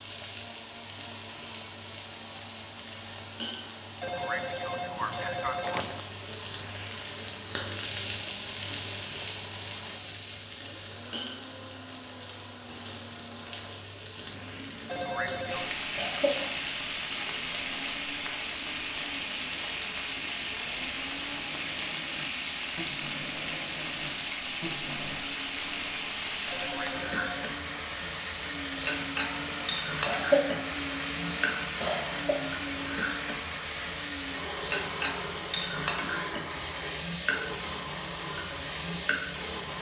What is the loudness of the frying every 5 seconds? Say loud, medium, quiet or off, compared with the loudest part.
medium, loud, medium, loud, loud, loud, loud, loud.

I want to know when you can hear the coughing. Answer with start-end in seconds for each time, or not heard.
15.9-16.5, 30.1-30.6, 31.8-32.5.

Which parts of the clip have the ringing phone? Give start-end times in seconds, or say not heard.
4.0-6.0, 14.8-15.8, 26.5-27.6.